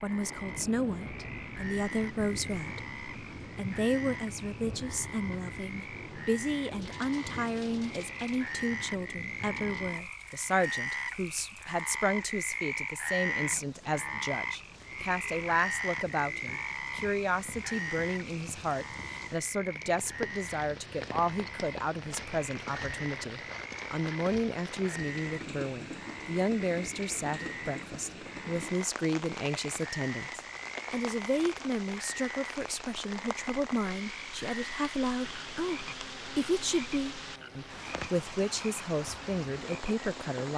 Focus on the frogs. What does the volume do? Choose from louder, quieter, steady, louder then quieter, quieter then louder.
louder then quieter.